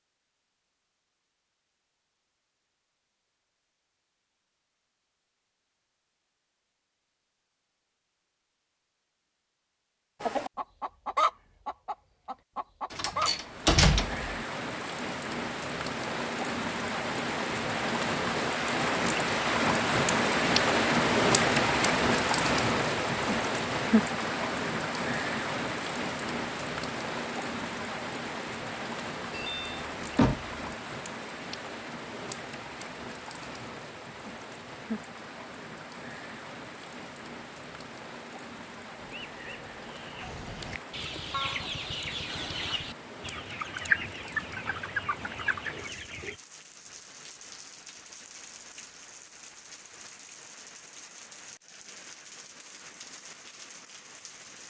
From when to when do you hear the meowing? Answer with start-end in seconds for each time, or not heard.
not heard.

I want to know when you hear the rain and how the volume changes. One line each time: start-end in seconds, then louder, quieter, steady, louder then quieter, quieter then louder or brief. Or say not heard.
13.3-54.6 quieter.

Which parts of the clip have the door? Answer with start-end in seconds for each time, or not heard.
12.9-14.4, 29.3-30.6.